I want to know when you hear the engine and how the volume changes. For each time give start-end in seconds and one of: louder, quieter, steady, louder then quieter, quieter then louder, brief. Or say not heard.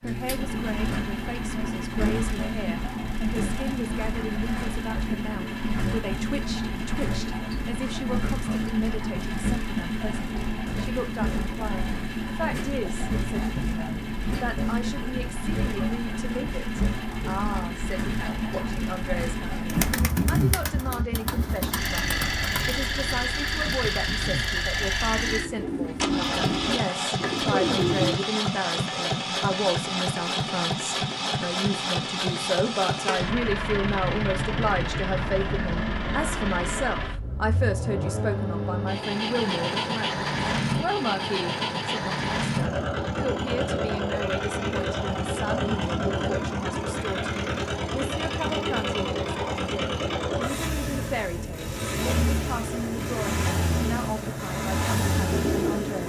0.0-56.0 steady.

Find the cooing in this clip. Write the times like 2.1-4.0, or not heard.
19.6-28.2, 52.0-56.0.